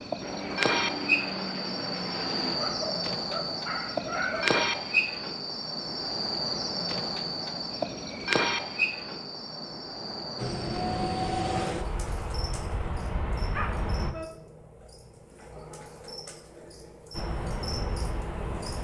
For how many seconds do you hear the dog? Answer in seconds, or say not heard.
3 s.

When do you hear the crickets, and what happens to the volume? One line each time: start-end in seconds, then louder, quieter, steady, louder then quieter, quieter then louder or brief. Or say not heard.
0.0-18.7 quieter.